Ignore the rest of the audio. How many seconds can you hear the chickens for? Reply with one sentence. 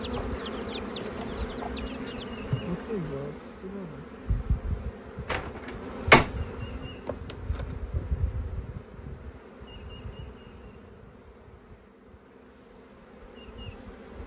You can hear the chickens for 2 seconds altogether.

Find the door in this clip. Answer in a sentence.
You can hear the door from 5.3 to 6.3 s.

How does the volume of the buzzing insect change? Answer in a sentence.
The loudness of the buzzing insect goes down.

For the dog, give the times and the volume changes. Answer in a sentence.
The dog can't be heard in this clip.